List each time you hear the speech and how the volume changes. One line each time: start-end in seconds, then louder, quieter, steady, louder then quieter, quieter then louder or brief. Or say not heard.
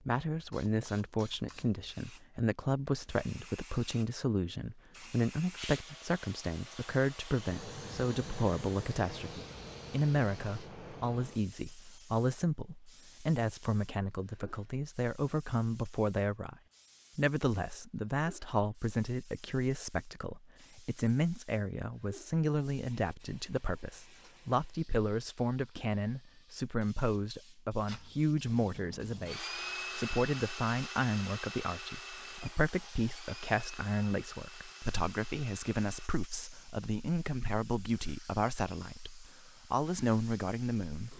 0.1-16.6 steady
17.1-41.1 steady.